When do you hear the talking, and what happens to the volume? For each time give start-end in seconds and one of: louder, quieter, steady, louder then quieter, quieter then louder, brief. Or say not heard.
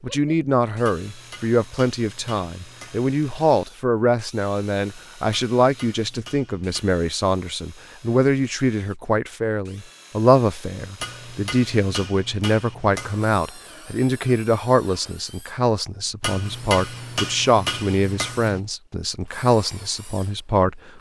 0.0-20.9 steady.